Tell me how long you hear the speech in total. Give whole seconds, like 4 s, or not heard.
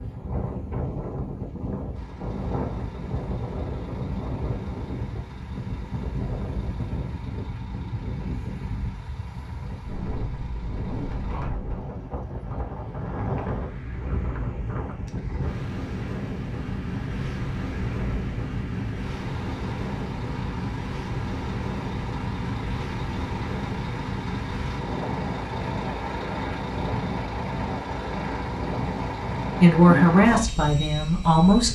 2 s.